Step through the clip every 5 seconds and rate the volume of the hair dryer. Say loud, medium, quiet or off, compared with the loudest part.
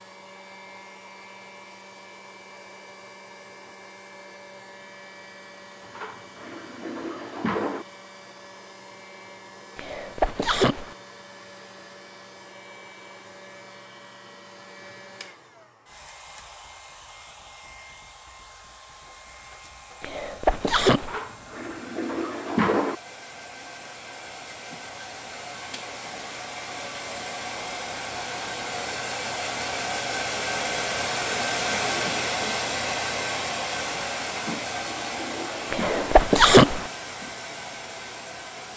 quiet, quiet, quiet, quiet, quiet, medium, loud, medium.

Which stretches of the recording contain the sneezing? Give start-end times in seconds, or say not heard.
9.8-10.9, 20.0-21.2, 35.7-36.9.